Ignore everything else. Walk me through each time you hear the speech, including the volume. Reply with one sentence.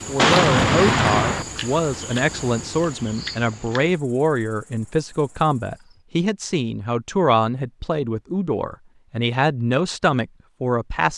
The speech can be heard from 0.1 to 11.1 s, at a steady volume.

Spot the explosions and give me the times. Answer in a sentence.
You can hear the explosions from 0.1 to 1.4 s.